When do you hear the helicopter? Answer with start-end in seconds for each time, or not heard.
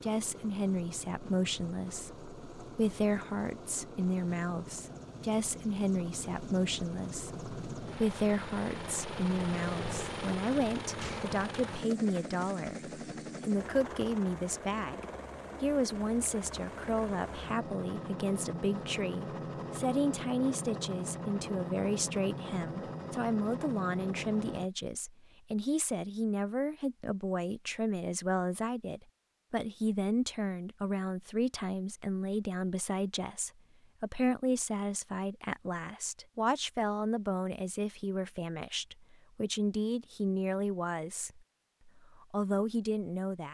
0.0-24.7.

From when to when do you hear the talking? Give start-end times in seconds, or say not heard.
0.0-43.4.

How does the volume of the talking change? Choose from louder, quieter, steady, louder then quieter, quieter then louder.
steady.